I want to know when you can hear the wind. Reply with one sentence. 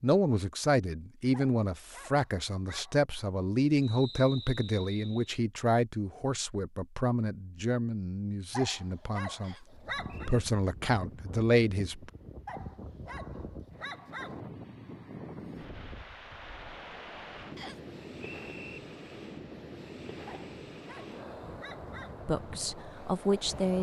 You can hear the wind from 9.7 to 23.7 s.